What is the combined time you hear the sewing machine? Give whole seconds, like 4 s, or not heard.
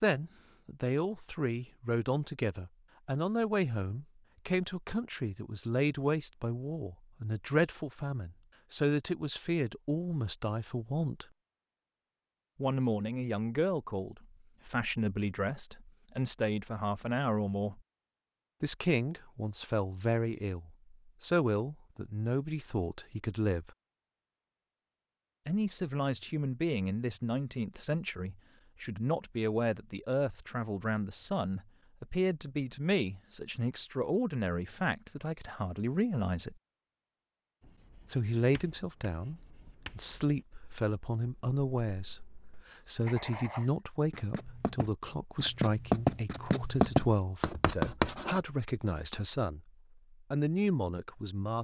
not heard.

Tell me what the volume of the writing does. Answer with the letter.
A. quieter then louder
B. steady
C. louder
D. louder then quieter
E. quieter
C.